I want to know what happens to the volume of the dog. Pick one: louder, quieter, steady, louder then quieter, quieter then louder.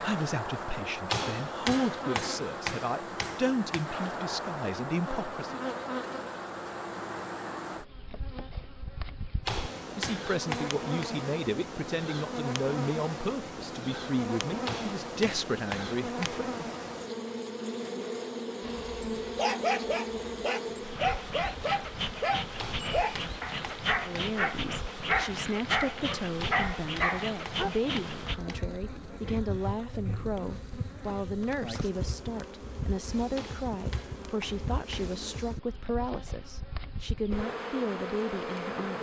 steady.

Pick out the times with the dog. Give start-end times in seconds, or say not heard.
18.6-27.7.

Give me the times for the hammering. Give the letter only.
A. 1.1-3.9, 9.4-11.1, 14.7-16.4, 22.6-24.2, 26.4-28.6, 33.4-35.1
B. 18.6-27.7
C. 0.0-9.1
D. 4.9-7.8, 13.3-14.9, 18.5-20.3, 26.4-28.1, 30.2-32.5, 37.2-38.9
A.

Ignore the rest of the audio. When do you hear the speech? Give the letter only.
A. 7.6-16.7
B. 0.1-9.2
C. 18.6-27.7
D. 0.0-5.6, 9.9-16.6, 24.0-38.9
D.